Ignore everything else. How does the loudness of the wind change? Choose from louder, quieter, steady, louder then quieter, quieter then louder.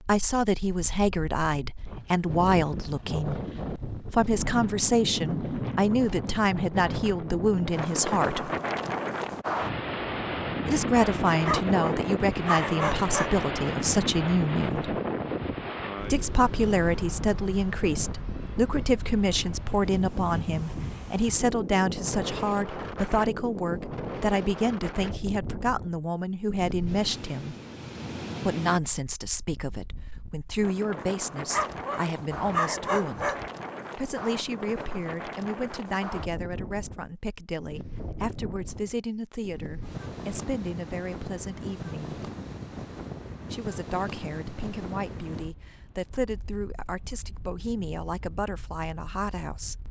quieter.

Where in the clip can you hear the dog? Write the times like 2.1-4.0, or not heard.
11.4-13.4, 31.5-33.5.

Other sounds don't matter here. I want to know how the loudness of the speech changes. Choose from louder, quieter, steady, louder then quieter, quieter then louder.
quieter.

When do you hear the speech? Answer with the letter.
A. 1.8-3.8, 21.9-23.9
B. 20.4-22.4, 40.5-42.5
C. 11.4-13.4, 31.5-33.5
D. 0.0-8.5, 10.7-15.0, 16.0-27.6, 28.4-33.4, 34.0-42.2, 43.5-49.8
D.